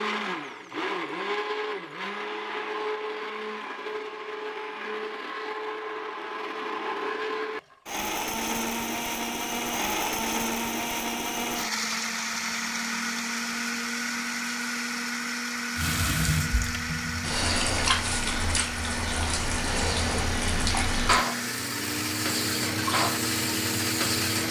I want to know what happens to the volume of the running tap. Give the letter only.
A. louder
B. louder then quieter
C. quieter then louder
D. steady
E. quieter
D.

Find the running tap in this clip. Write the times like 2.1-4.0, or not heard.
15.8-24.4.